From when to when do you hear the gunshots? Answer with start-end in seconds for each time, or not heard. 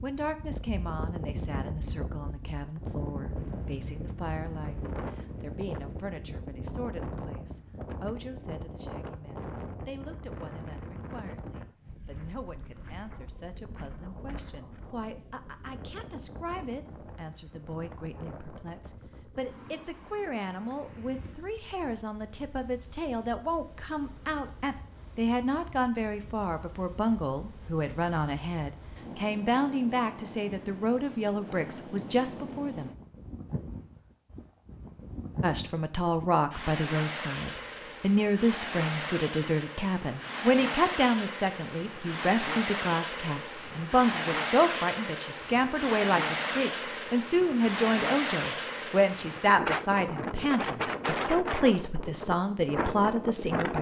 not heard.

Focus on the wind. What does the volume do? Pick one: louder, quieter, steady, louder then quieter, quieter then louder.
quieter then louder.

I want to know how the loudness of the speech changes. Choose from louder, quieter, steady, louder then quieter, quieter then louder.
louder.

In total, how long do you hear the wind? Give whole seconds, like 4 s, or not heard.
54 s.